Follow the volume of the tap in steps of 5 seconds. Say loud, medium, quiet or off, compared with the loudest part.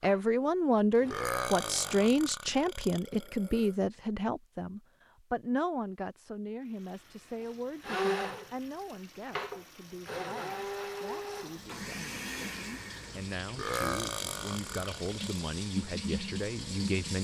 off, quiet, medium, loud.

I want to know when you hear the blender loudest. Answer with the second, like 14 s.
8 s.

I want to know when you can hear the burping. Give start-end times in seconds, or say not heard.
1.1-3.8, 13.5-15.4.